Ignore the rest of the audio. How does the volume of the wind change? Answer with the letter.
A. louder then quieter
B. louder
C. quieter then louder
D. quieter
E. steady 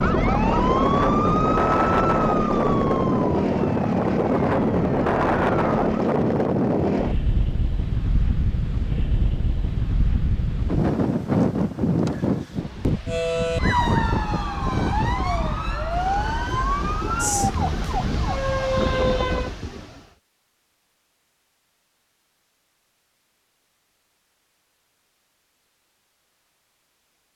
D.